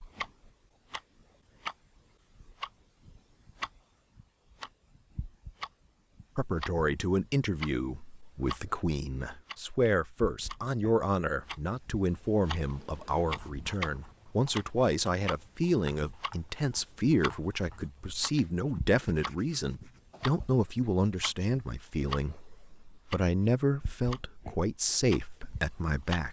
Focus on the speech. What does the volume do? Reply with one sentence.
The loudness of the speech stays about the same.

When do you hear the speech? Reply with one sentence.
The speech can be heard from 6.3 to 26.2 s.